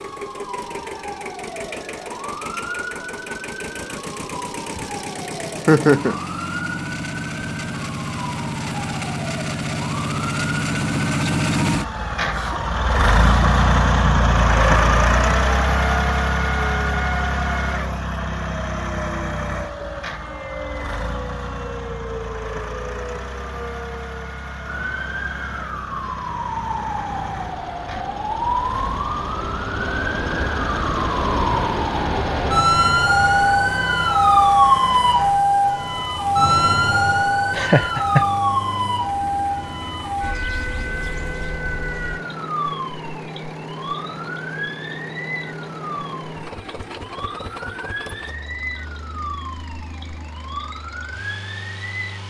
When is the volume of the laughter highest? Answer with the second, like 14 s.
6 s.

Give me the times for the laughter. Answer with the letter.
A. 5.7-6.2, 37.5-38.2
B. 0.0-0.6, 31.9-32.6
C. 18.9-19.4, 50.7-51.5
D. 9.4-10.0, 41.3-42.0
A.